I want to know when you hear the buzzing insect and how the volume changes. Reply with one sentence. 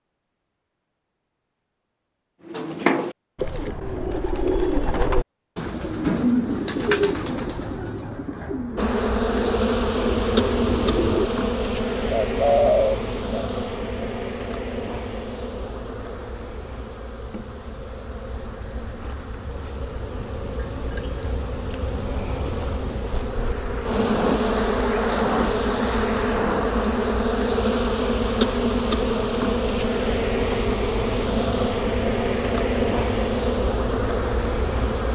The buzzing insect can be heard from 8.8 to 35.1 s, getting quieter then louder.